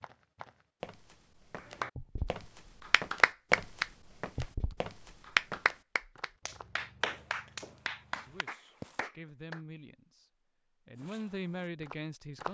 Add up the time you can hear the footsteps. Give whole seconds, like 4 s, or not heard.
11 s.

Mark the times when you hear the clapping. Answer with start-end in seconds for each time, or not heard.
1.8-9.6.